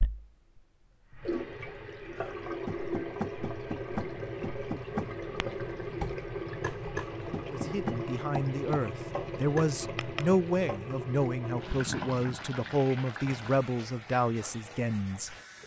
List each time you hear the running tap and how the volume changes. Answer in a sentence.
The running tap can be heard from 0.0 to 15.6 s, getting quieter.